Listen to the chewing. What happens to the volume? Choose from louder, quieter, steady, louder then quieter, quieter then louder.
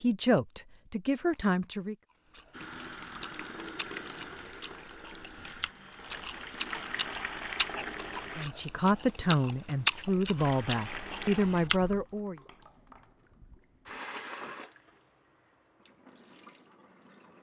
louder.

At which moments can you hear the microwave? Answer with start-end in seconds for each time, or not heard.
not heard.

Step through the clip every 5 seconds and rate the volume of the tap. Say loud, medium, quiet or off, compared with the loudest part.
loud, loud, loud, quiet.